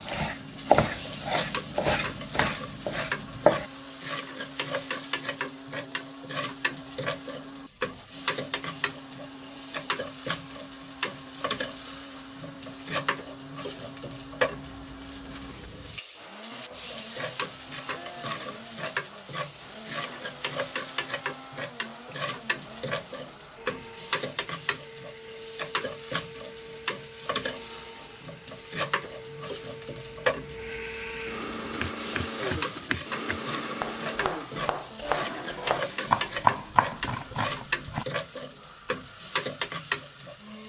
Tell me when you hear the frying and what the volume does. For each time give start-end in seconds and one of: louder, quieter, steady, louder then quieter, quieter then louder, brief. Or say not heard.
0.0-40.6 steady.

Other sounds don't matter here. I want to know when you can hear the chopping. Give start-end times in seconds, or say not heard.
0.0-3.6, 31.8-38.0.